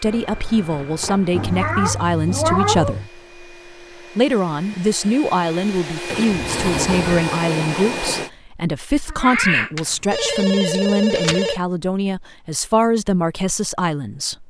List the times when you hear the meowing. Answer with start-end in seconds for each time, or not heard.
1.3-3.1, 9.1-11.6.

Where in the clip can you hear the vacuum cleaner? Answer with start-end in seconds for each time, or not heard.
0.0-8.3.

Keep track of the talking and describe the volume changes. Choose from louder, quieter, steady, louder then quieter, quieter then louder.
steady.